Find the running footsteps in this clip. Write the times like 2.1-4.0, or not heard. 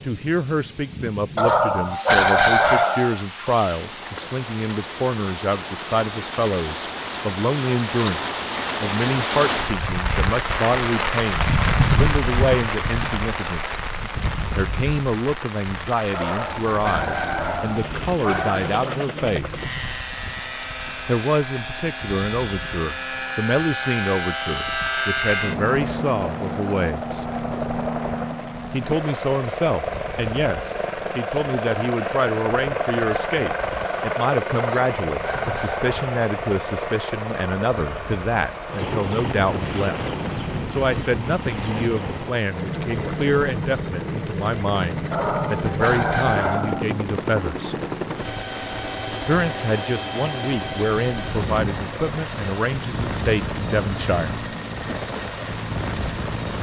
not heard.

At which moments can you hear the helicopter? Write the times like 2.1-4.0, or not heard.
16.4-56.5.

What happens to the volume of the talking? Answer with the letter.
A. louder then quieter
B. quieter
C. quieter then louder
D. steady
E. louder
D.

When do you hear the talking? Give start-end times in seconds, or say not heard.
0.0-13.7, 14.6-19.6, 21.1-27.2, 28.7-40.0, 40.7-47.8, 49.2-54.5.